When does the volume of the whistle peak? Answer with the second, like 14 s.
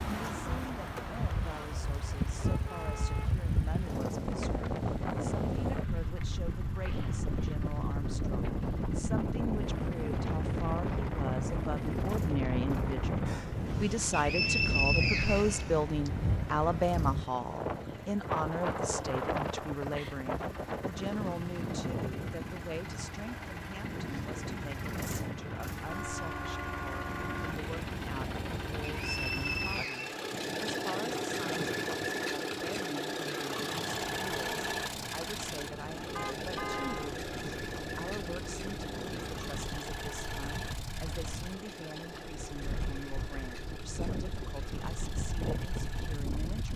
15 s.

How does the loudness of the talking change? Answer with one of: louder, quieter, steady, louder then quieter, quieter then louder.
louder then quieter.